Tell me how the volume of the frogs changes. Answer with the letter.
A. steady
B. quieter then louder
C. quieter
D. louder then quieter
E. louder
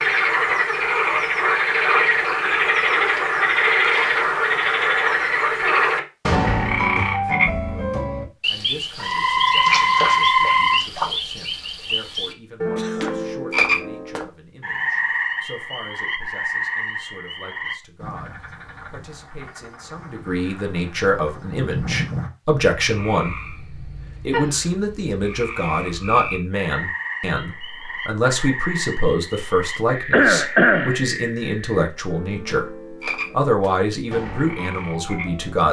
C.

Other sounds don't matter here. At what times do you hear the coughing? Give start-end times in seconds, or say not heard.
12.8-13.3, 30.1-30.9.